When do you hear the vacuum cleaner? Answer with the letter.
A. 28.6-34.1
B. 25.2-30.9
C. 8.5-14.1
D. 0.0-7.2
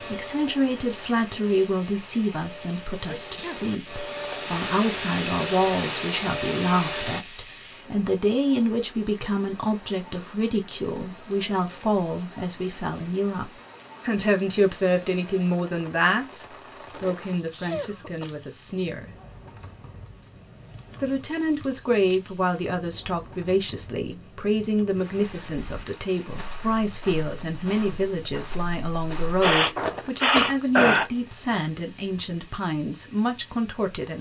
D.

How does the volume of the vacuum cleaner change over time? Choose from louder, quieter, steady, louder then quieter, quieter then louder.
louder.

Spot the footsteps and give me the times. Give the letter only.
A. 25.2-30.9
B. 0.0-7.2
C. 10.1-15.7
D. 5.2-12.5
A.